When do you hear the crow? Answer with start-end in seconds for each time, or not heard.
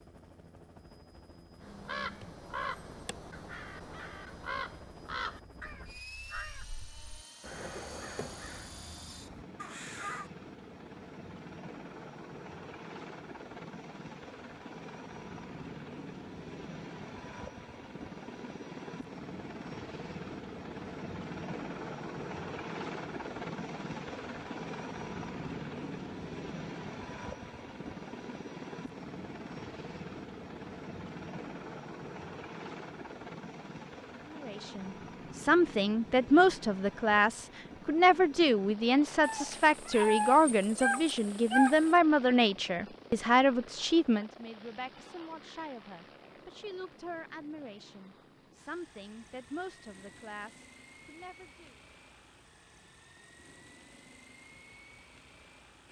1.6-10.3.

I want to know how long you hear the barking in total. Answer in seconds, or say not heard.
3 s.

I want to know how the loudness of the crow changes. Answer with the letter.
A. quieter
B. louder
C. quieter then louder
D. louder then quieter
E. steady
A.